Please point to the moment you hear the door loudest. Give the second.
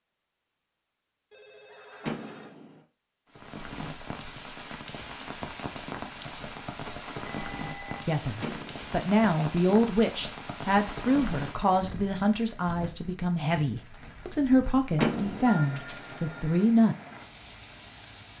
15 s.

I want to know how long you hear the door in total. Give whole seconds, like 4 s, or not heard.
2 s.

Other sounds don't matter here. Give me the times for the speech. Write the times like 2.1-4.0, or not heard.
8.1-16.9.